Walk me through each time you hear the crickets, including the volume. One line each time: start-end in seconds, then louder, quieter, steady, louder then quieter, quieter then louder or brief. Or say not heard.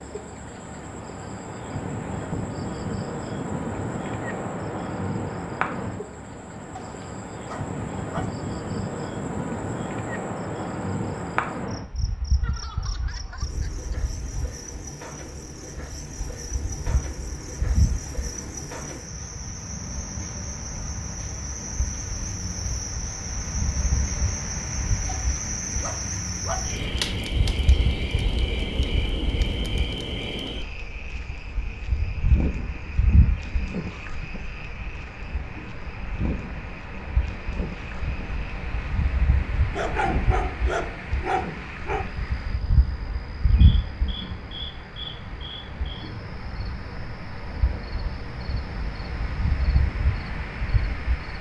0.0-51.3 louder then quieter.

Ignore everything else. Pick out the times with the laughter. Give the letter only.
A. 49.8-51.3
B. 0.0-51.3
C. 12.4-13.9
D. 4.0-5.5
C.